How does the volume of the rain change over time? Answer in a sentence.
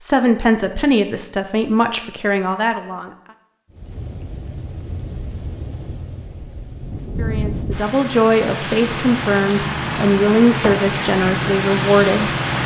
The loudness of the rain goes up.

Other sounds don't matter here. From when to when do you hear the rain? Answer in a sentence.
You can hear the rain from 3.7 to 12.6 s.